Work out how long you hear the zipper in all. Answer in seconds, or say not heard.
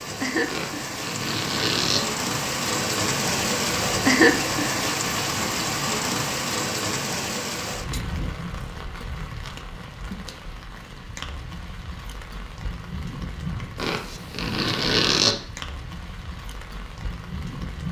3 s.